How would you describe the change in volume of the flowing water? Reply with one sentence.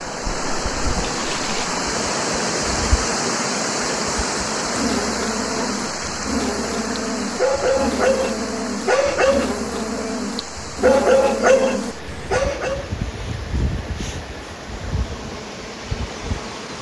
The loudness of the flowing water goes down.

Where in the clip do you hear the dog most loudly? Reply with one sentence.
The volume of the dog peaks at 11 seconds.